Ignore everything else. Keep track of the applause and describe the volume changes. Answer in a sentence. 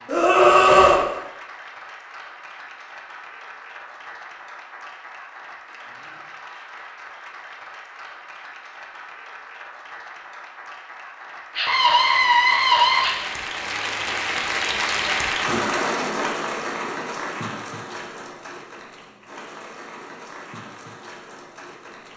The volume of the applause goes up, then down.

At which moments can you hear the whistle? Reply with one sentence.
The whistle can't be heard in this clip.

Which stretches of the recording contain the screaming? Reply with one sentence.
The screaming can be heard from 0.1 to 1.1 s and from 11.6 to 13.2 s.